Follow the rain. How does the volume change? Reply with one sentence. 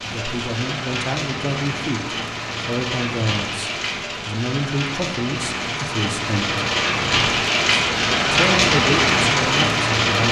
The loudness of the rain goes up.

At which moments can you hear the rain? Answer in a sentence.
You can hear the rain from 0.0 to 10.2 s.